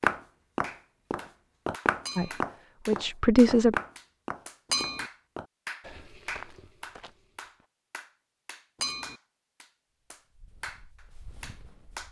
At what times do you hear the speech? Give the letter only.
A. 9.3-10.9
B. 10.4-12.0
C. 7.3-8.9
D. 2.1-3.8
D.